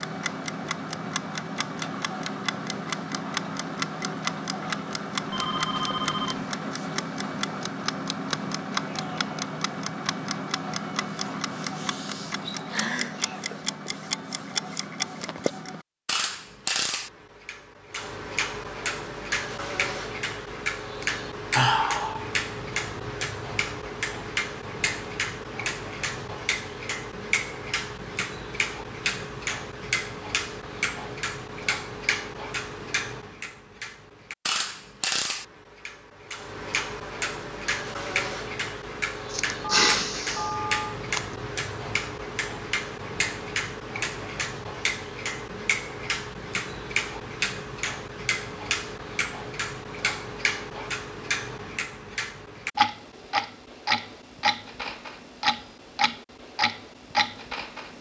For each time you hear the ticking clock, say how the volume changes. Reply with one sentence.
You can hear the ticking clock from 0.0 to 57.9 s, at a steady volume.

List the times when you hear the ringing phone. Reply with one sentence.
You can hear the ringing phone from 5.3 to 6.5 s and from 39.6 to 41.0 s.